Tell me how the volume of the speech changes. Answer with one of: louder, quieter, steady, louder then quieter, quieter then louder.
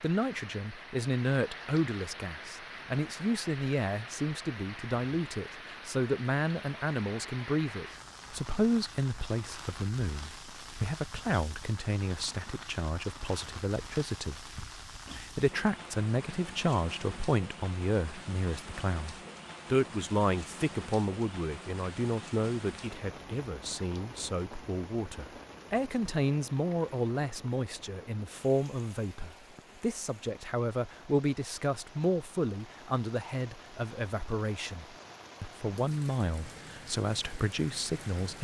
steady.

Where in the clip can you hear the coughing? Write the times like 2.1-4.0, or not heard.
not heard.